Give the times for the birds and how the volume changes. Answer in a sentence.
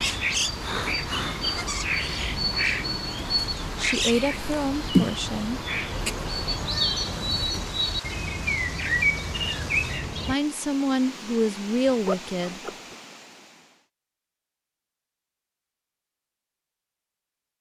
The birds can be heard from 0.0 to 10.3 s, at a steady volume.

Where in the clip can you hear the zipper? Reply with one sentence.
The zipper can be heard from 11.8 to 12.9 s.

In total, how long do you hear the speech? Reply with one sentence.
You can hear the speech for 4 seconds altogether.